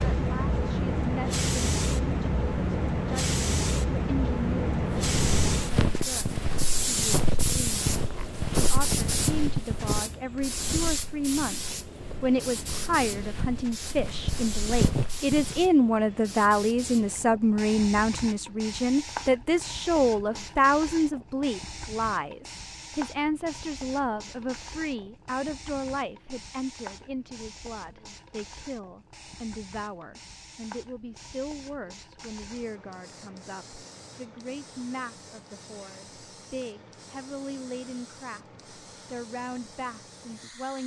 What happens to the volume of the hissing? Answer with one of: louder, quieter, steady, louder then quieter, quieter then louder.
quieter.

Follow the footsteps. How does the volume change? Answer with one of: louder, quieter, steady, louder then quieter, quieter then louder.
quieter then louder.